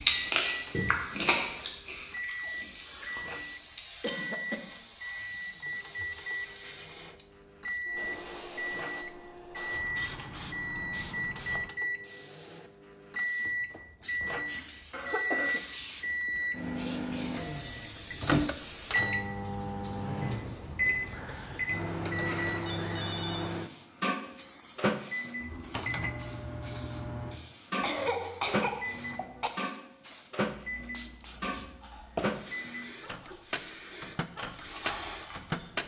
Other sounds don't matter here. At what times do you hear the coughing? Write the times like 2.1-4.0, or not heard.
4.0-4.7, 14.9-16.1, 27.8-29.5.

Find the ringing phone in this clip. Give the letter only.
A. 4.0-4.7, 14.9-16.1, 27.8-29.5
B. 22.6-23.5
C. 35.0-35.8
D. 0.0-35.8
B.